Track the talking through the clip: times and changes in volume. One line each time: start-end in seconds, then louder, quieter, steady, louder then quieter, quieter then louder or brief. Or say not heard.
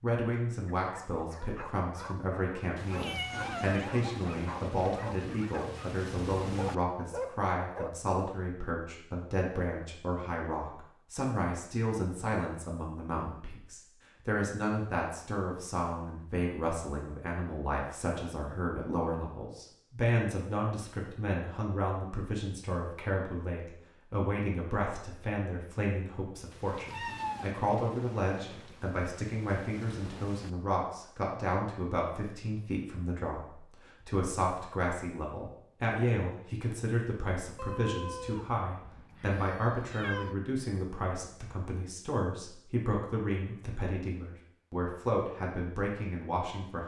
0.0-46.8 steady.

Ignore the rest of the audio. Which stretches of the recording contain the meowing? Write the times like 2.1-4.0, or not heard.
2.9-3.9, 26.9-27.5, 37.5-40.4.